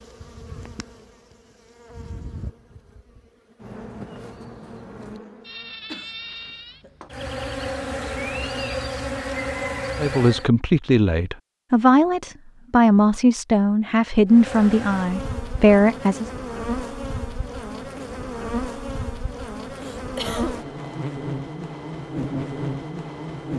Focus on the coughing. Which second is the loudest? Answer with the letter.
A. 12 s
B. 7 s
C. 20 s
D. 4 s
C.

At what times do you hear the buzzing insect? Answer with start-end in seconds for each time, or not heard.
0.0-10.5, 14.2-23.5.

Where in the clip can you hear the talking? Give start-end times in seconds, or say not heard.
9.9-16.2.